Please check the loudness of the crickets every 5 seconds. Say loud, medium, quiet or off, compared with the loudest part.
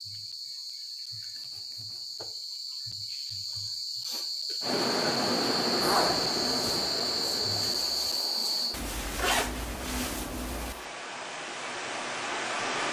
medium, loud, off.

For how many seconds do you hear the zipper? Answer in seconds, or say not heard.
4 s.